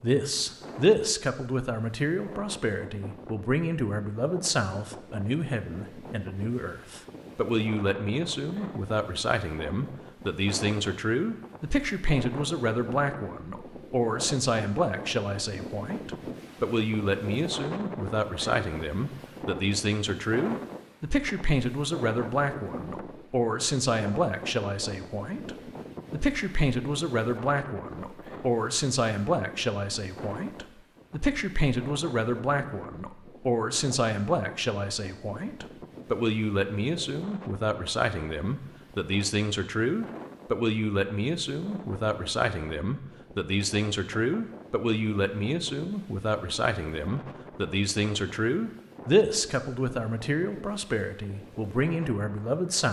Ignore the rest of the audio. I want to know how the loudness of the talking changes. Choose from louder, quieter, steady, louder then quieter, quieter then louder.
steady.